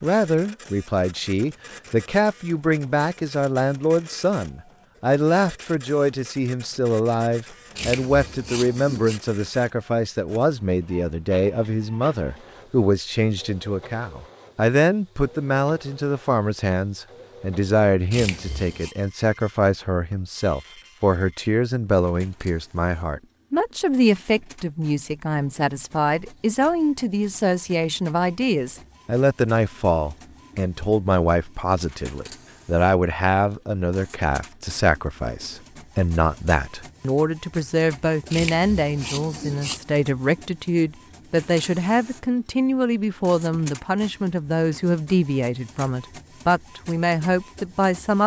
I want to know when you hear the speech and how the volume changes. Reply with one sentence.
The speech can be heard from 0.0 to 48.2 s, at a steady volume.